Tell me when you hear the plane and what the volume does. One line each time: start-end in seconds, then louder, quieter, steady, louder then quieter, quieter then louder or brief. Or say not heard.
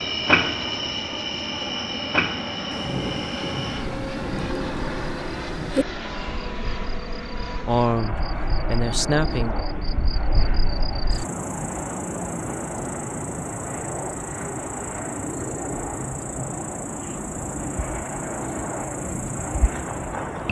0.0-20.4 steady.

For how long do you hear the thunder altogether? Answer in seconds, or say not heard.
3 s.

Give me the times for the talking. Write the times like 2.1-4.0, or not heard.
7.7-9.7.